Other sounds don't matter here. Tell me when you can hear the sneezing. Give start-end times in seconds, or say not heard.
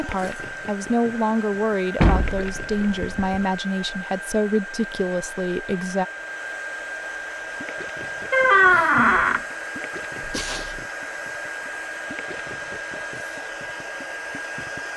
10.2-10.8.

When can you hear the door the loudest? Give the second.
9 s.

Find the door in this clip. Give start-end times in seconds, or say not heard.
2.0-3.5, 8.3-9.4.